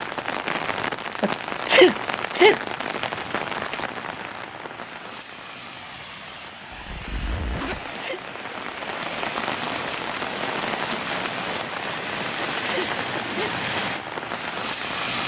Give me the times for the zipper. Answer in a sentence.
The zipper can be heard from 6.7 to 7.8 s.